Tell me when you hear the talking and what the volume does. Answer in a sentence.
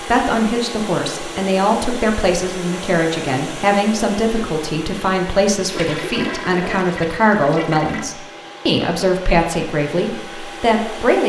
The talking can be heard from 0.0 to 11.2 s, at a steady volume.